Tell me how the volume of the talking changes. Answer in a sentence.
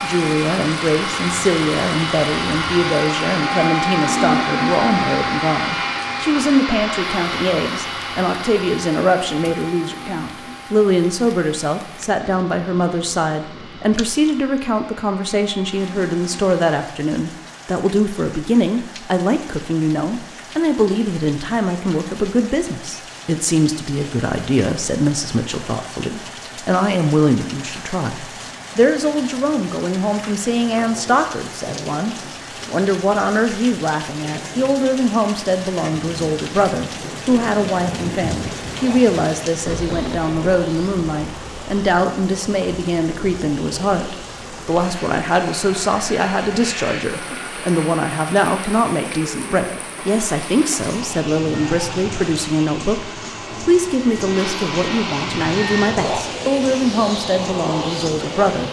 The loudness of the talking stays about the same.